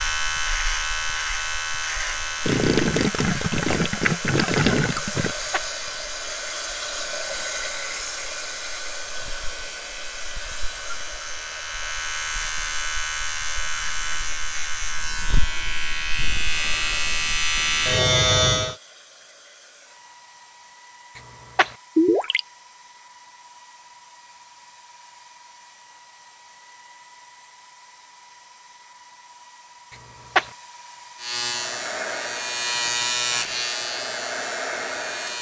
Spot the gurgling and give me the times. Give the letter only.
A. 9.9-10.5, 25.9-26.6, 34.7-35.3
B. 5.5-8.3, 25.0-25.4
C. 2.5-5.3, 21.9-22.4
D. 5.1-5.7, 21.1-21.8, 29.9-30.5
C.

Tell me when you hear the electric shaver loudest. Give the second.
18 s.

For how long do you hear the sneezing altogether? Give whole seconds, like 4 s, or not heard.
2 s.